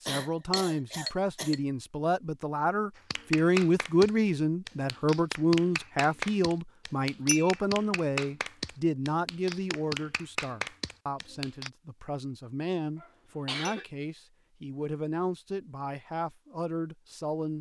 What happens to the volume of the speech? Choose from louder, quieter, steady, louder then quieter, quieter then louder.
quieter.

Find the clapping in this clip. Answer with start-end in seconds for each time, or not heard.
3.0-11.7.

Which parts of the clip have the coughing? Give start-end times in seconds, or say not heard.
0.1-1.6, 12.9-13.8.